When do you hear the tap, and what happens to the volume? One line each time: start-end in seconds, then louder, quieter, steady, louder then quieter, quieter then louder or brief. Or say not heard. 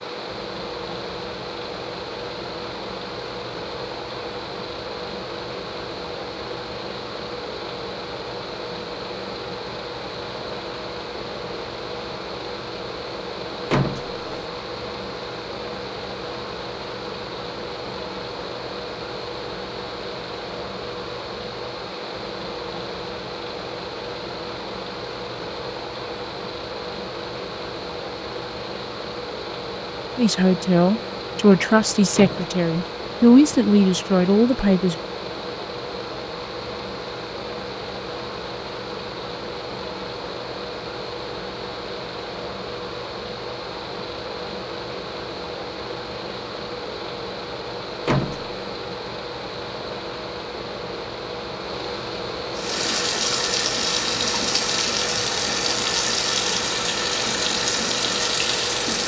52.5-59.0 steady.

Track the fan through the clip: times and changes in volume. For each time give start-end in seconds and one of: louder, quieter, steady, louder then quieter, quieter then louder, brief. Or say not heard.
0.0-59.0 steady.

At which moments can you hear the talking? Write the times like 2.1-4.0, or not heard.
30.1-35.0.